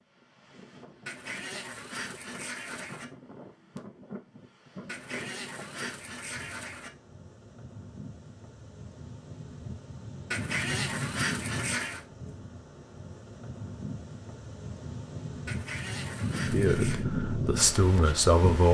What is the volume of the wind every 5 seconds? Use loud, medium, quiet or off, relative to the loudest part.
quiet, quiet, medium, loud.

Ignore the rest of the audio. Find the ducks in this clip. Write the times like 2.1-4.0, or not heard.
1.1-3.0, 4.8-6.9, 10.3-12.1, 15.4-17.1.